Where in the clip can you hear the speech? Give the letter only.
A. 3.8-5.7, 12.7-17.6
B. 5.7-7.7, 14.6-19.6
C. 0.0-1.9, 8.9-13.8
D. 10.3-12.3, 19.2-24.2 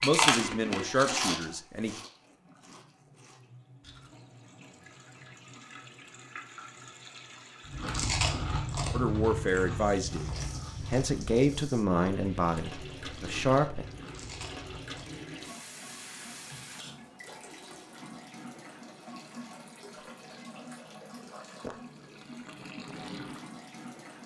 C.